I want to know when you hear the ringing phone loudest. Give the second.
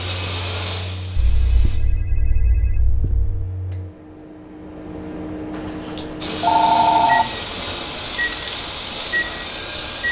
7 s.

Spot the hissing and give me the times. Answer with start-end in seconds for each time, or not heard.
0.0-1.8, 6.2-10.0.